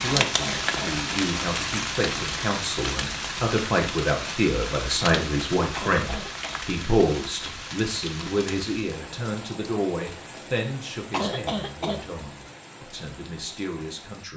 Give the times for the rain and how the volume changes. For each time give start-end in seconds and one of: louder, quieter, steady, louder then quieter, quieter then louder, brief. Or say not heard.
0.0-14.2 quieter.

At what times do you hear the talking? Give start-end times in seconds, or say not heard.
0.0-14.3.